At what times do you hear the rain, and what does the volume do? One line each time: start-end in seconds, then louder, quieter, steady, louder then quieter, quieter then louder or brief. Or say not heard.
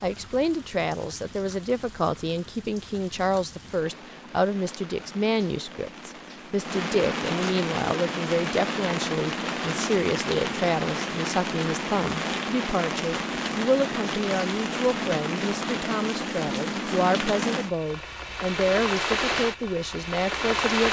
0.0-20.8 louder.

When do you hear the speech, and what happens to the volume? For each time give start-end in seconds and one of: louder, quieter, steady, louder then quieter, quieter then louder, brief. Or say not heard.
0.0-20.8 steady.